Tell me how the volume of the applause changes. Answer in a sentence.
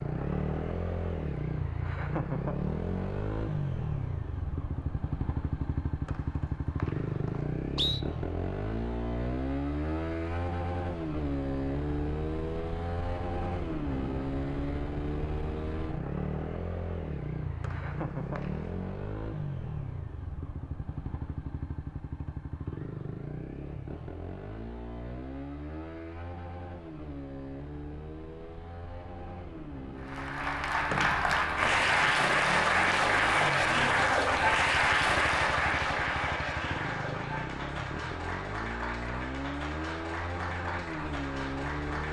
The loudness of the applause goes down.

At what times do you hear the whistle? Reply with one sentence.
The whistle can be heard from 6.0 to 8.0 s, from 17.6 to 18.7 s and from 30.9 to 31.9 s.